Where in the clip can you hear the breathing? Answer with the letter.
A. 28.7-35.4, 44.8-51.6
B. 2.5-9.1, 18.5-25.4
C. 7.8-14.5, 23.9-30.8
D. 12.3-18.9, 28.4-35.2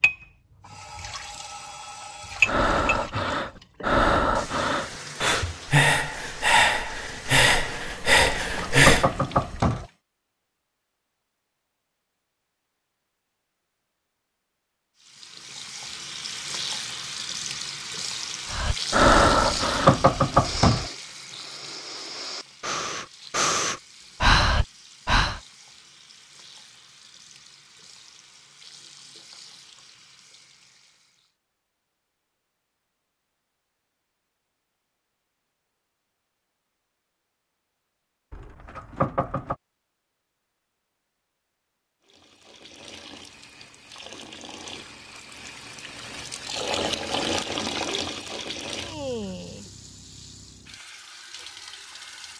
B.